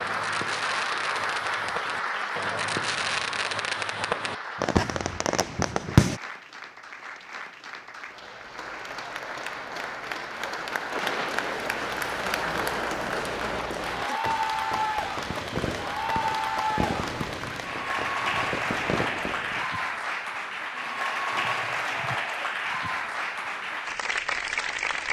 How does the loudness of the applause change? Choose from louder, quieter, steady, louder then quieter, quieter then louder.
quieter then louder.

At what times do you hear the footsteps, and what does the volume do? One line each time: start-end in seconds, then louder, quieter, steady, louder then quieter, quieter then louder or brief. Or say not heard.
not heard.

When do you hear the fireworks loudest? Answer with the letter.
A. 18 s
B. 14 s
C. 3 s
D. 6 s
D.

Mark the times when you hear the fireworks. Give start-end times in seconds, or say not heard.
0.0-6.2, 10.9-19.6.